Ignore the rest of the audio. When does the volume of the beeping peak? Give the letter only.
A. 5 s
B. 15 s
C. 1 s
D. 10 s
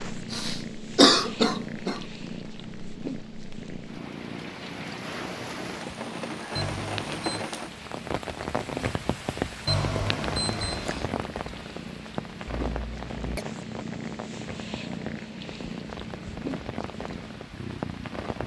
D.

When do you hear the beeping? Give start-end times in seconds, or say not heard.
6.5-7.5, 9.7-11.2.